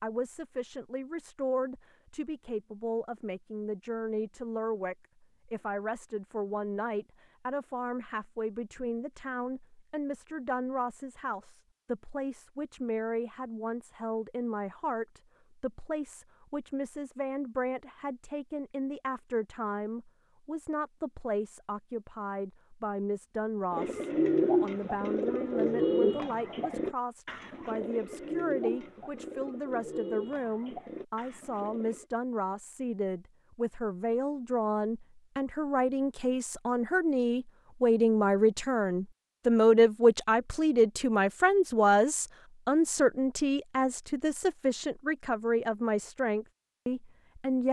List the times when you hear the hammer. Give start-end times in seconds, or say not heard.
not heard.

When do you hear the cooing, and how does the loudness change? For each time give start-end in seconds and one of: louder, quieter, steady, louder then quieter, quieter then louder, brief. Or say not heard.
23.7-32.0 quieter.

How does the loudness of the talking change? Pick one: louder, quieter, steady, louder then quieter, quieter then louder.
louder.